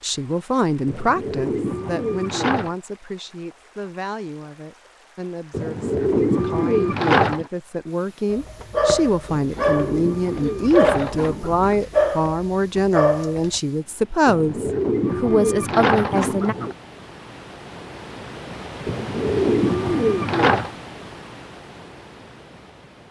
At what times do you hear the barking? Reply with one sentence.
The barking can be heard from 8.3 to 13.6 s.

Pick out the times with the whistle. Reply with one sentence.
The whistle can't be heard in this clip.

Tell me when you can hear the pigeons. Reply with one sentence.
You can hear the pigeons from 0.8 to 2.8 s, from 5.5 to 7.5 s, from 9.2 to 11.8 s, from 14.2 to 16.8 s and from 18.9 to 20.8 s.